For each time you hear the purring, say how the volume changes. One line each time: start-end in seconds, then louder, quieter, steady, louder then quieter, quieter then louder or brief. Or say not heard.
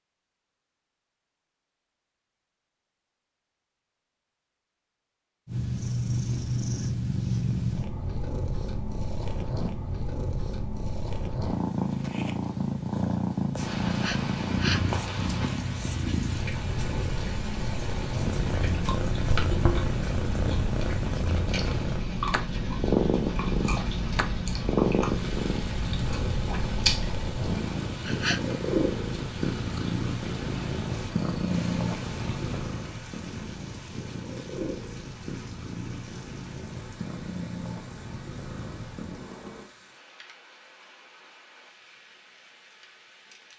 5.5-39.7 quieter.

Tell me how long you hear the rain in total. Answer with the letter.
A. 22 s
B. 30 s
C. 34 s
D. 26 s
B.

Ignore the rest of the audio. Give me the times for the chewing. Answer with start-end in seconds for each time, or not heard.
18.4-27.1.